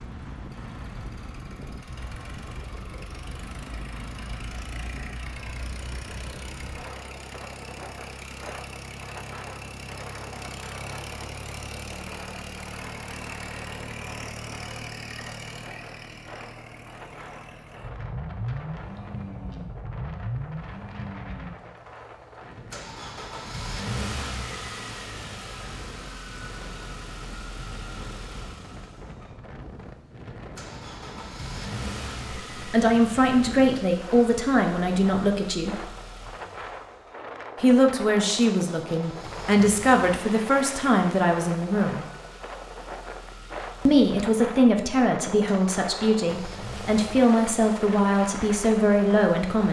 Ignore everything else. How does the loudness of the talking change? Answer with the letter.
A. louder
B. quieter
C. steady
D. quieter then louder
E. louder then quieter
C.